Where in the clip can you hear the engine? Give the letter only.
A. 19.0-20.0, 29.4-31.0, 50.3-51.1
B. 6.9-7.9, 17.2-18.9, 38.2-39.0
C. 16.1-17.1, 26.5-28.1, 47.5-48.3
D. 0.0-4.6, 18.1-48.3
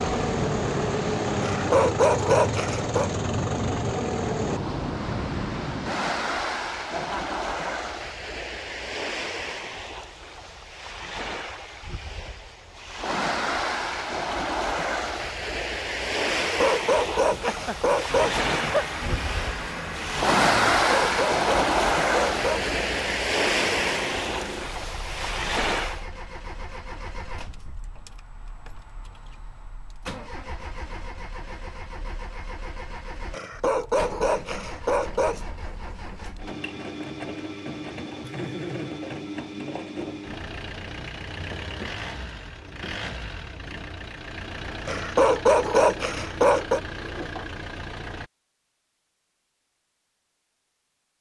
D.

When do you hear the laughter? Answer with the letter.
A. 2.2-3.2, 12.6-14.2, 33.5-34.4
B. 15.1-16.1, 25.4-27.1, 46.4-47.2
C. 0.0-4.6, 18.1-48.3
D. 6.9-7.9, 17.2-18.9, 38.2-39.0
D.